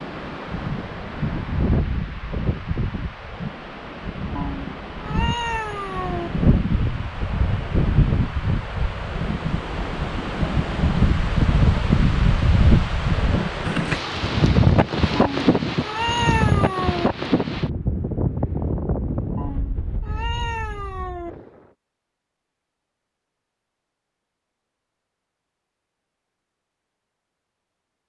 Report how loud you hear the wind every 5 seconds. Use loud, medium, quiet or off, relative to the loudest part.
medium, medium, loud, loud, quiet, off.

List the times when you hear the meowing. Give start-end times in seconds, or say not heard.
4.3-6.3, 15.2-17.1, 19.4-21.3.